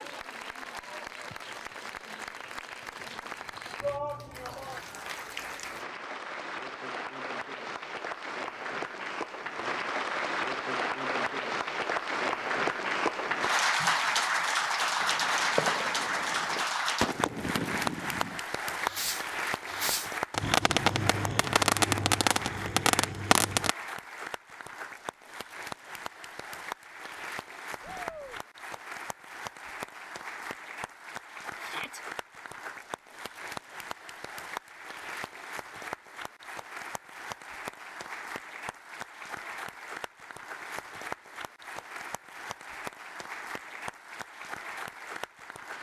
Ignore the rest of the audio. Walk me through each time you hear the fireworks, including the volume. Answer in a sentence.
The fireworks can be heard from 14.9 to 23.8 s, getting louder.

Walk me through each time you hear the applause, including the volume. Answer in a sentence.
The applause can be heard from 0.0 to 45.7 s, getting louder then quieter.